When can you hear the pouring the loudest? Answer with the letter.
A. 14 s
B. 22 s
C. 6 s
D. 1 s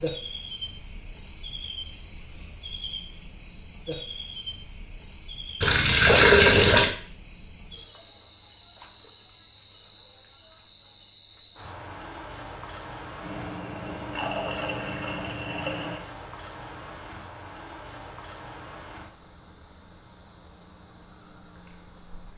C.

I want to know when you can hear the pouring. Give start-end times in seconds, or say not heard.
5.6-6.9, 13.2-16.1.